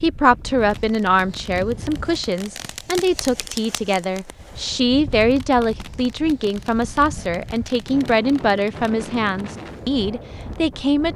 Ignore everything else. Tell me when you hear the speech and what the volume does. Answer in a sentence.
The speech can be heard from 0.0 to 11.1 s, at a steady volume.